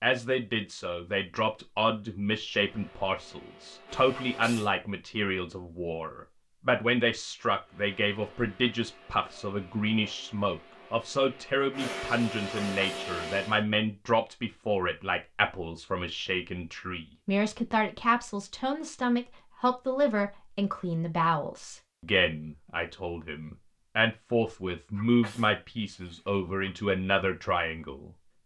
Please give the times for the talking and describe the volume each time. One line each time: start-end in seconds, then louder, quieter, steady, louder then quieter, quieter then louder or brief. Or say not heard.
0.0-28.1 steady.